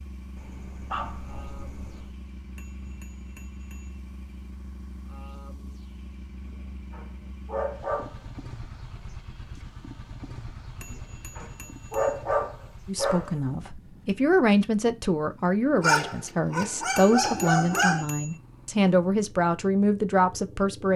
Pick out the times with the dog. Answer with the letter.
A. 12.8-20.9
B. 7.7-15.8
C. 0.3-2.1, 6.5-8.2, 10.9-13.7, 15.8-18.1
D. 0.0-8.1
C.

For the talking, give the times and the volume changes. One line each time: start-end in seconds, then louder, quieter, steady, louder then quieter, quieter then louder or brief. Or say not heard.
12.8-20.9 steady.